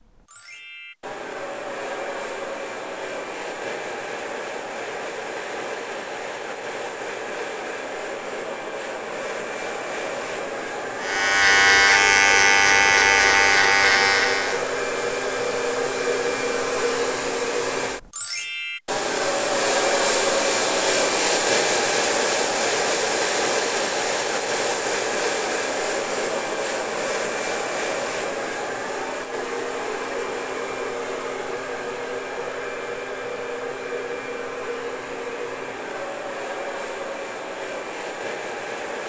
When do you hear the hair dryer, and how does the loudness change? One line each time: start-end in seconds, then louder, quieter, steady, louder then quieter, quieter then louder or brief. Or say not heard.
0.0-39.0 louder then quieter.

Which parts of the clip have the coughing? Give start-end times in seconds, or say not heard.
not heard.